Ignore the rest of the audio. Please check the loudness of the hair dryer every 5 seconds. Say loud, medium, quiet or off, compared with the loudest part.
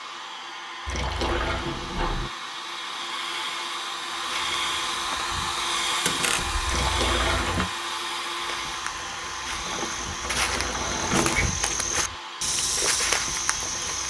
loud, loud, medium.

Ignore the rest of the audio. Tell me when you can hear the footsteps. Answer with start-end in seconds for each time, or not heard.
4.2-6.2, 8.3-14.0.